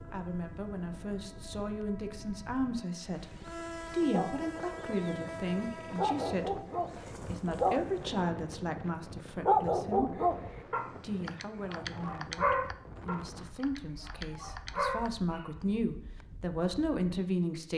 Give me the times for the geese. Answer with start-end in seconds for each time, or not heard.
not heard.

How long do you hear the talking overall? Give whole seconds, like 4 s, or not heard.
16 s.